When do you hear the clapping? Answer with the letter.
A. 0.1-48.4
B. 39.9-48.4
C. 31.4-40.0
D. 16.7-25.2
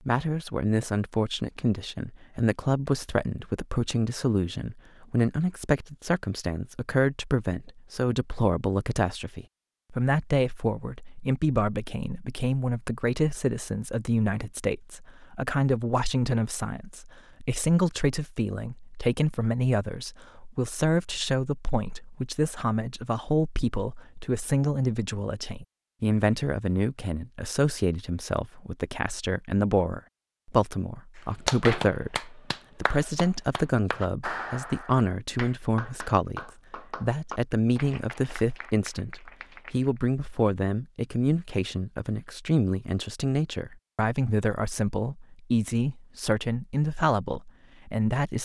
C.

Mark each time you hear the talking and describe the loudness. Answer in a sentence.
You can hear the talking from 0.1 to 48.4 s, at a steady volume.